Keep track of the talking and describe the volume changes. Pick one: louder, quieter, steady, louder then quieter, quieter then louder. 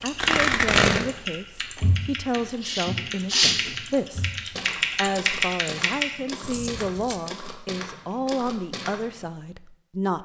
steady.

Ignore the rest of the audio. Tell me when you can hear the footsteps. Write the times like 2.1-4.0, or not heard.
1.8-9.3.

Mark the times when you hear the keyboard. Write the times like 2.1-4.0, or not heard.
0.0-6.1.